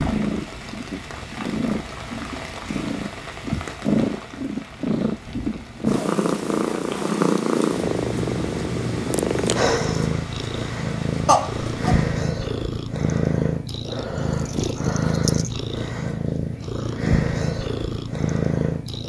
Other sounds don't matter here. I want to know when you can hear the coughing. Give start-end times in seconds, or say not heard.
11.2-12.0.